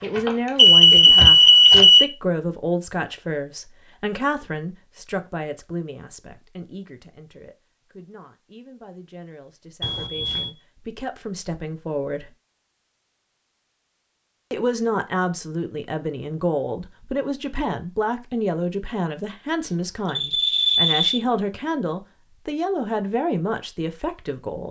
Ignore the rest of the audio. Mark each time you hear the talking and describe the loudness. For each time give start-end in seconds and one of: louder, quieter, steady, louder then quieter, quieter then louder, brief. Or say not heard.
0.0-12.3 quieter then louder
14.5-24.6 steady.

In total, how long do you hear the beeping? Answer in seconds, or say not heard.
4 s.